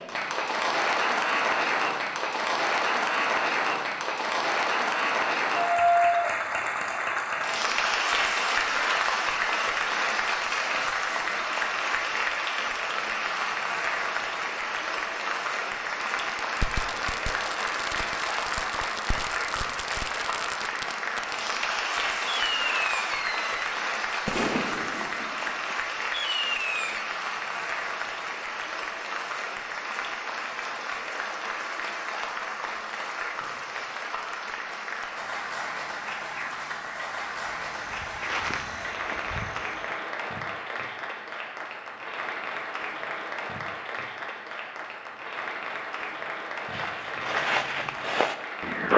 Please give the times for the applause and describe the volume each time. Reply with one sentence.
You can hear the applause from 0.0 to 48.9 s, getting quieter.